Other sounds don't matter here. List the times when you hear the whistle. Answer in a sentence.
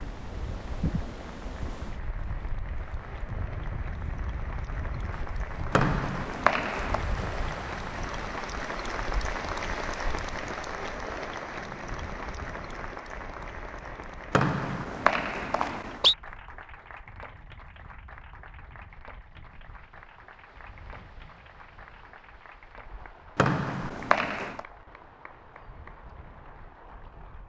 The whistle can be heard from 5.7 to 7.0 s, from 14.3 to 16.1 s and from 23.4 to 24.6 s.